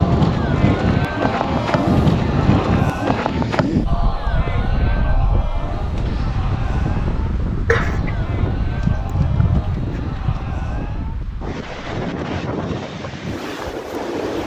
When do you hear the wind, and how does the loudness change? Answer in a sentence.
You can hear the wind from 0.0 to 14.4 s, getting quieter.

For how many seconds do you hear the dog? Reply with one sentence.
The dog can be heard for 3 seconds in total.